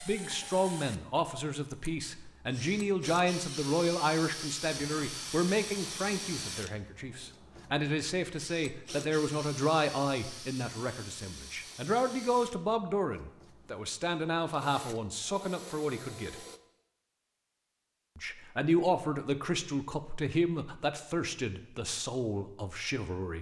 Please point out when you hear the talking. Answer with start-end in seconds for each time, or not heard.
0.0-16.4, 18.1-23.3.